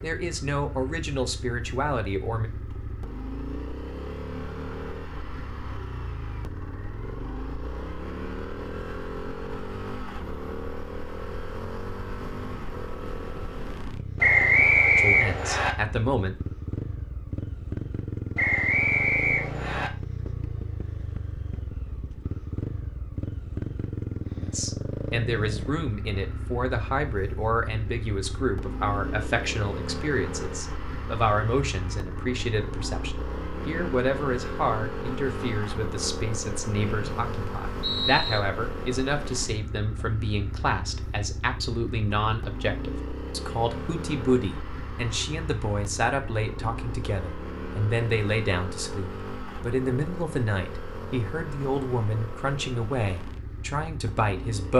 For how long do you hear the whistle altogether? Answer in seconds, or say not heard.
5 s.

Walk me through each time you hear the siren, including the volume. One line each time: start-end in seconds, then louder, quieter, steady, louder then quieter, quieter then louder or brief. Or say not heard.
not heard.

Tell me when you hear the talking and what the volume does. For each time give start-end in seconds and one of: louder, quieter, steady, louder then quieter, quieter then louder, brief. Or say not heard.
0.0-2.5 brief
14.9-16.6 brief
24.4-54.7 steady.